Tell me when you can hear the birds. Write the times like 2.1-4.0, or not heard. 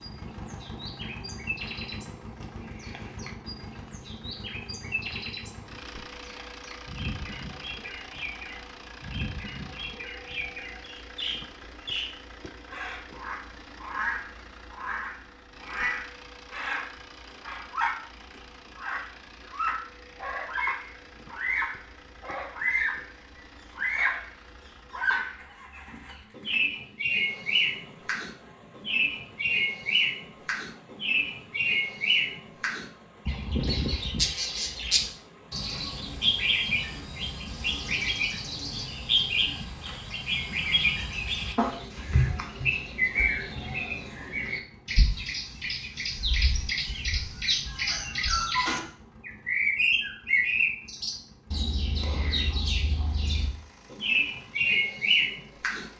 0.0-17.9, 18.8-23.1, 23.8-24.2, 24.9-55.9.